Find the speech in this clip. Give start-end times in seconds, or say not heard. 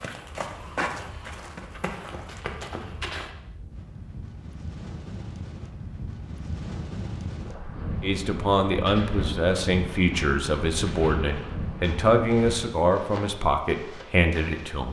8.0-14.8.